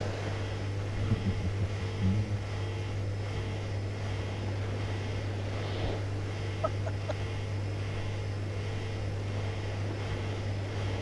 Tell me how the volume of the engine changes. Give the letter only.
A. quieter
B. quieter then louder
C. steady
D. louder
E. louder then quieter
C.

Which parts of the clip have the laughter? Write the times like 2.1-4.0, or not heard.
0.9-2.4, 6.6-7.3.